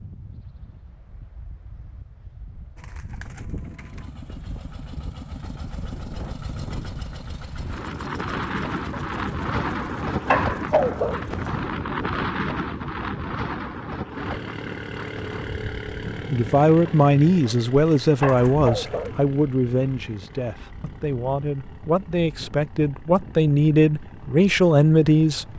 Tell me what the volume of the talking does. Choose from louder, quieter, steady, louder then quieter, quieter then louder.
quieter then louder.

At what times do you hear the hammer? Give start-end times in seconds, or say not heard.
not heard.